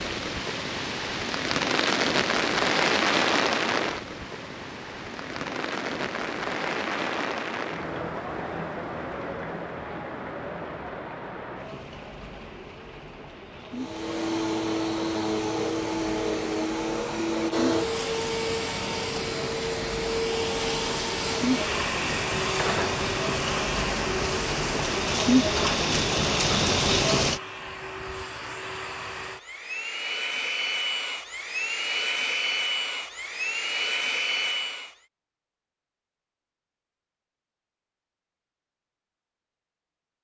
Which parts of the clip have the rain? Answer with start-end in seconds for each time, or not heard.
0.0-27.4.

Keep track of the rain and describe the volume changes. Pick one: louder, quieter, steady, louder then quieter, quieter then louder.
quieter then louder.